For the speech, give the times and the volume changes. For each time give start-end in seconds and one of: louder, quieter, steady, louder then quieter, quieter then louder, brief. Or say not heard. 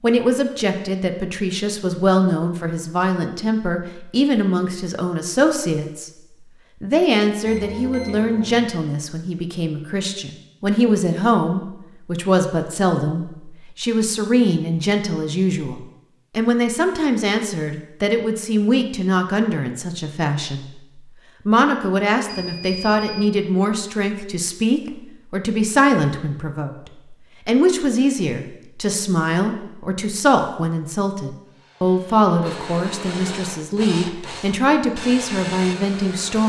0.0-36.4 steady.